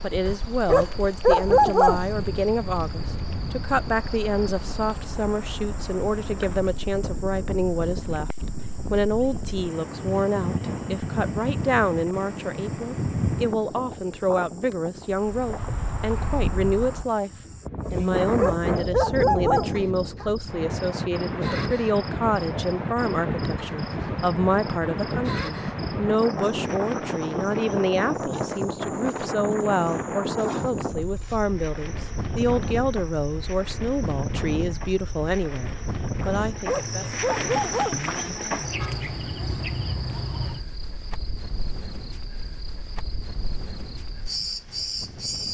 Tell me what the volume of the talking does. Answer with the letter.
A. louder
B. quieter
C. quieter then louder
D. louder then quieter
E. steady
E.